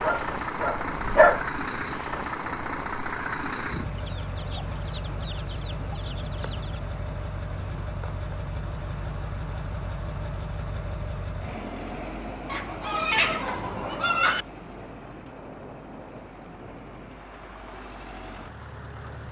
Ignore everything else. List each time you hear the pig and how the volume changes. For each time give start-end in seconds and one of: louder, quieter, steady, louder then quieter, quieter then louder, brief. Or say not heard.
not heard.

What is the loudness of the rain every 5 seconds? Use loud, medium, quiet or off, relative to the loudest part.
loud, loud, loud, medium.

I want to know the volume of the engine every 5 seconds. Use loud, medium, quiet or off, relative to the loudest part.
loud, medium, medium, quiet.